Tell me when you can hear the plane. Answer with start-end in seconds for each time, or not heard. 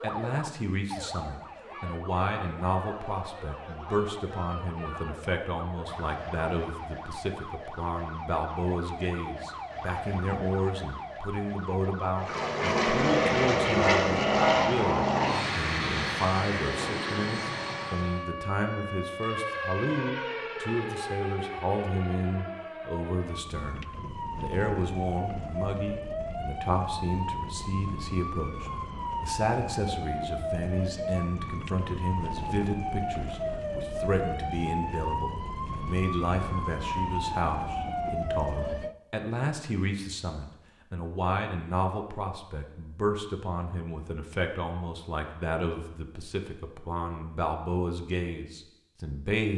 12.2-18.2.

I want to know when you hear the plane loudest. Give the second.
14 s.